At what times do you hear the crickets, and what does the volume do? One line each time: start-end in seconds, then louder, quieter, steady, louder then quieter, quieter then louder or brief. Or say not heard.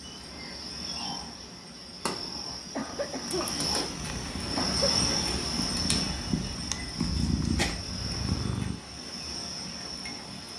0.0-10.5 louder then quieter.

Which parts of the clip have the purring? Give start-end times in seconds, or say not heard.
3.9-8.8.